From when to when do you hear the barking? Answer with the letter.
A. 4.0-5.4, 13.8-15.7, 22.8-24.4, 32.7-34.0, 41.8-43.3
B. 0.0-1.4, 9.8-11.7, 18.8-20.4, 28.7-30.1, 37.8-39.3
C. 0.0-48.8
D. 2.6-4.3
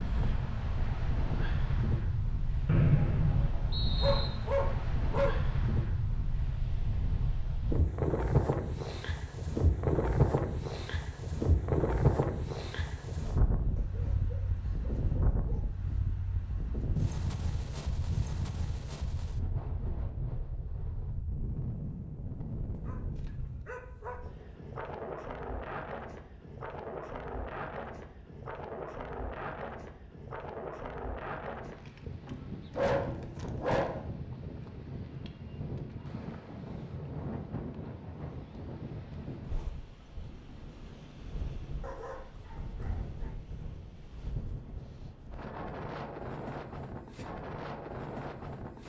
A.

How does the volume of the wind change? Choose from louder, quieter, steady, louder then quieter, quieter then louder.
quieter.